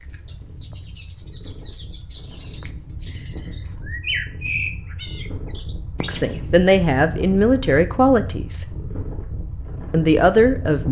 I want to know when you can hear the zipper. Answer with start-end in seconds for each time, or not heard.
not heard.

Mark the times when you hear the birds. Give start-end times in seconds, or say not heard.
0.0-6.6.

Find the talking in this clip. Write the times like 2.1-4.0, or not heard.
6.0-8.7, 9.9-10.8.